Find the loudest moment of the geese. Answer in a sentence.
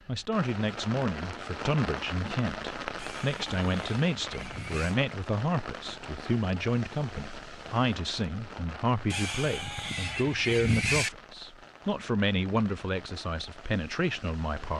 The loudest moment of the geese is at 11 seconds.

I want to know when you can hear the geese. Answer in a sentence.
You can hear the geese from 3.0 to 5.0 s and from 9.1 to 11.1 s.